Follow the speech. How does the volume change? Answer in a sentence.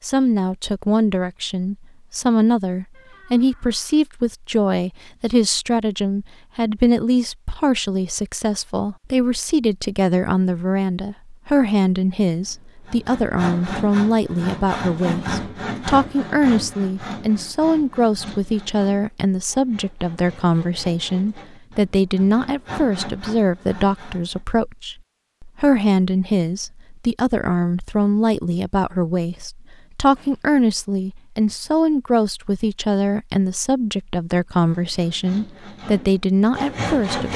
The loudness of the speech stays about the same.